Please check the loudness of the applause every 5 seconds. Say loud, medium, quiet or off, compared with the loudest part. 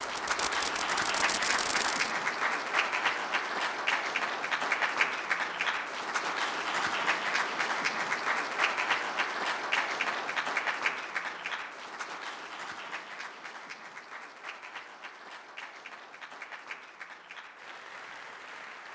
loud, loud, medium, quiet.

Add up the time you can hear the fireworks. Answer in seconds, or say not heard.
2 s.